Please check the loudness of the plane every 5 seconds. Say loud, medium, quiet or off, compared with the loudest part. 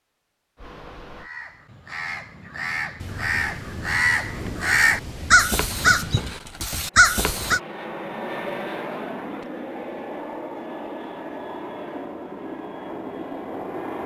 off, loud, loud.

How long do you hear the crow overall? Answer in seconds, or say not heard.
7 s.